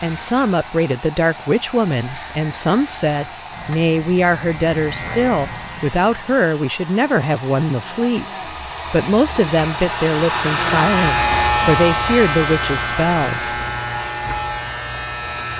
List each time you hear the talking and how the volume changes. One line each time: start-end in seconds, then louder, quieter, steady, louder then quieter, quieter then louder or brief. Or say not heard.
0.0-13.7 steady.